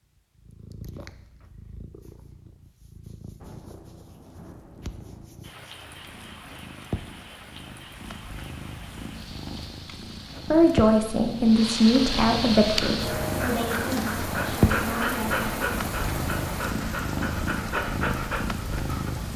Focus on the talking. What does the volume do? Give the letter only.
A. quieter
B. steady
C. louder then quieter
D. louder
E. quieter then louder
A.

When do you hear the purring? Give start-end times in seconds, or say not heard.
0.1-19.3.